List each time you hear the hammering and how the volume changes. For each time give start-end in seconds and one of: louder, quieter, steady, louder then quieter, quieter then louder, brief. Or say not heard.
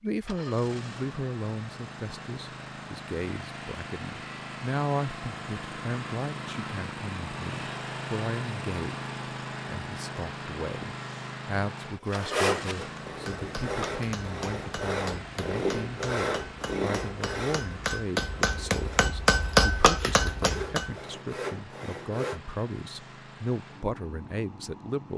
13.1-21.0 louder.